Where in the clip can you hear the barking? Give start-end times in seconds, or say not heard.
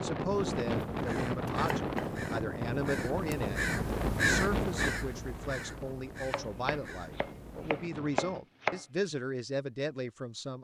not heard.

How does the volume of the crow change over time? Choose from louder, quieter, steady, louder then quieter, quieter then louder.
louder then quieter.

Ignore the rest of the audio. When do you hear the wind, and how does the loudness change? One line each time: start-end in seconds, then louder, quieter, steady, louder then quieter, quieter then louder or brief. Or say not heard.
0.0-8.4 quieter.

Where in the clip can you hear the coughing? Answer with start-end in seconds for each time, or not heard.
not heard.